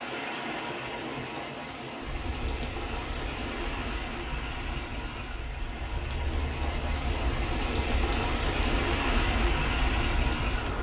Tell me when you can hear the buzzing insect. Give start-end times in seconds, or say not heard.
not heard.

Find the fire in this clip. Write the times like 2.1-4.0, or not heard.
2.0-10.7.